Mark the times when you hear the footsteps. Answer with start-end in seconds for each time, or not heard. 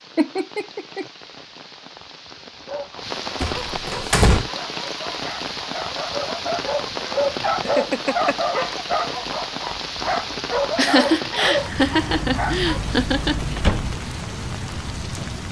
not heard.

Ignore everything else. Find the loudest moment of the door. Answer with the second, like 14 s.
4 s.